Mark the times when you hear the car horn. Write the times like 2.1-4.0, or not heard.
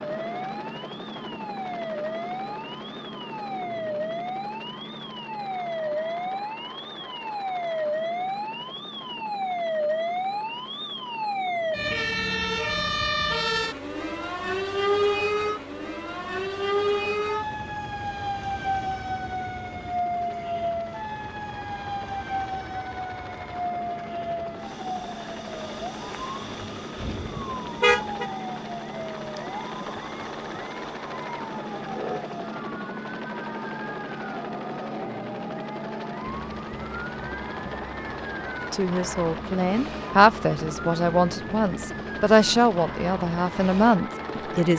26.9-28.2.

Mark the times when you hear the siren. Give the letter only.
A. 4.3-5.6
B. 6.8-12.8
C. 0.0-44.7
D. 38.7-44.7
C.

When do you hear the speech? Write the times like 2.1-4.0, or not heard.
38.7-44.7.